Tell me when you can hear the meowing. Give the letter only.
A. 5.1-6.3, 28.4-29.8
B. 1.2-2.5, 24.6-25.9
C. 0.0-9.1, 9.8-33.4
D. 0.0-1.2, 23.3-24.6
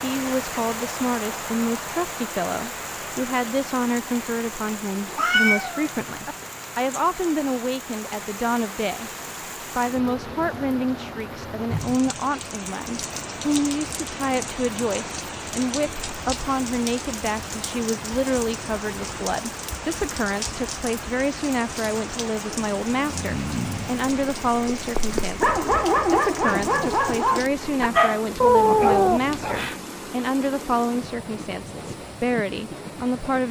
A.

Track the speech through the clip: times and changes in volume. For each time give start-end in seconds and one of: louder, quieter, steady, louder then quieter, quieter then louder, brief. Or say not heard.
0.0-9.1 steady
9.8-33.4 steady.